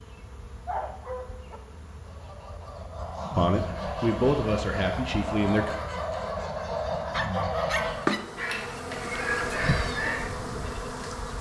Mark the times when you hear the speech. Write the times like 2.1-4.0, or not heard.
3.4-5.8.